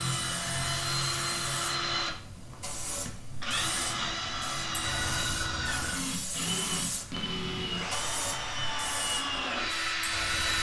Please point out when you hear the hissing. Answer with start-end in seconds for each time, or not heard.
0.0-10.5.